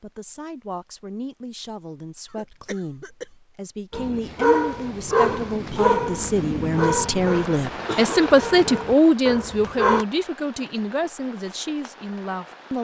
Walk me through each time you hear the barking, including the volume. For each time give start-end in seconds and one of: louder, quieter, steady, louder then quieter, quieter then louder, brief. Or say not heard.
3.9-10.1 quieter.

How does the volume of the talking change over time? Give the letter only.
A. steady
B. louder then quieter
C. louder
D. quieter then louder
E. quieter
B.